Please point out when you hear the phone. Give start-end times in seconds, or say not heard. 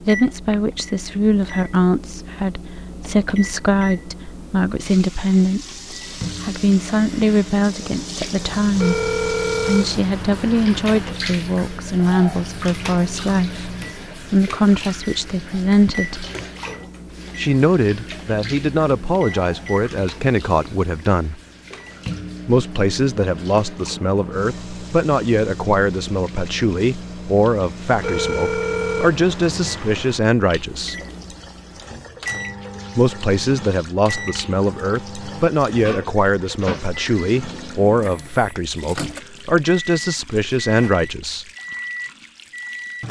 8.8-11.2, 27.9-30.2.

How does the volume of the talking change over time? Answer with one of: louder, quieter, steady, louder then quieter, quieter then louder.
steady.